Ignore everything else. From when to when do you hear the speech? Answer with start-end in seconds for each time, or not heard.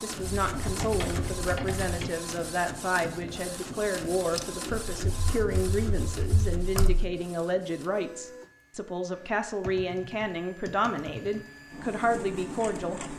0.0-13.0.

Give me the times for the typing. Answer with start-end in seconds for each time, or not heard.
0.2-2.1, 4.8-7.1, 9.2-11.5.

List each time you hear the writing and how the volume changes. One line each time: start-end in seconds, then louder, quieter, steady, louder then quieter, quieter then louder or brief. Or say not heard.
not heard.